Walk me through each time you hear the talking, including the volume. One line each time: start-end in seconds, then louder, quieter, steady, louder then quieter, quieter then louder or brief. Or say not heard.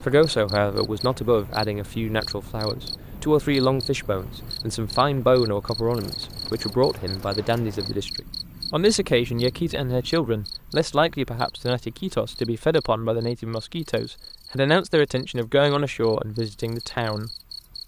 0.0-17.3 steady.